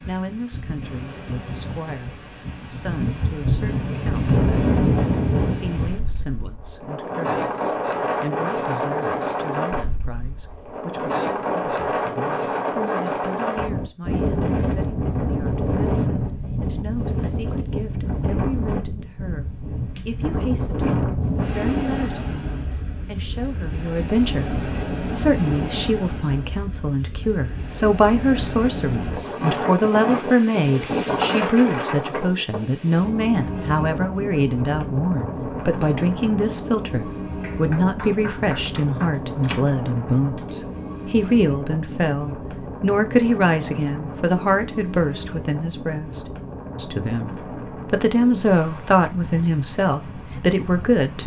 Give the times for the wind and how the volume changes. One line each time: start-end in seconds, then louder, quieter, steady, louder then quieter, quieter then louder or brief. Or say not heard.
0.0-51.2 quieter.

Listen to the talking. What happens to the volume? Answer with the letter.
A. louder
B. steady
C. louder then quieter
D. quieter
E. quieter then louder
A.